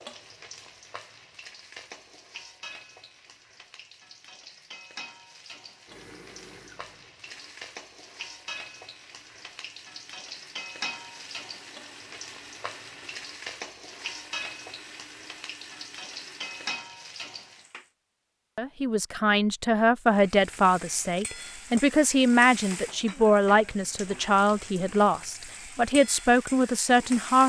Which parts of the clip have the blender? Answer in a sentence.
The blender can be heard from 5.8 to 16.8 s.